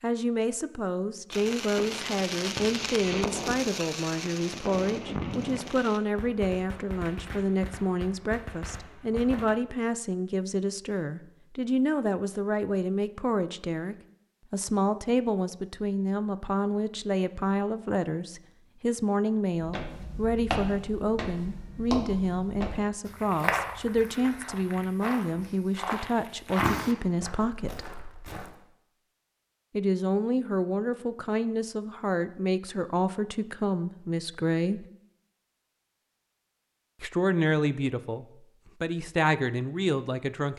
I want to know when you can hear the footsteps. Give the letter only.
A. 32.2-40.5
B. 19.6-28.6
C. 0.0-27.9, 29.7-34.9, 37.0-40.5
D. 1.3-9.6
B.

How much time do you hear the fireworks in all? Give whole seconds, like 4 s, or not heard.
8 s.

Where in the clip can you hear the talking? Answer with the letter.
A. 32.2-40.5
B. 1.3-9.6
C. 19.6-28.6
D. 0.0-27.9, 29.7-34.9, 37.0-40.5
D.